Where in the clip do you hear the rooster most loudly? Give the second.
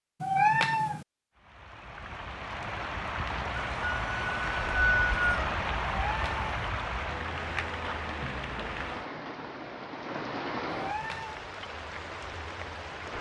5 s.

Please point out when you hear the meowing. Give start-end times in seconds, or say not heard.
0.2-1.1, 6.0-6.5, 10.7-11.4.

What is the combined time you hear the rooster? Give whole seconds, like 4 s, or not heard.
2 s.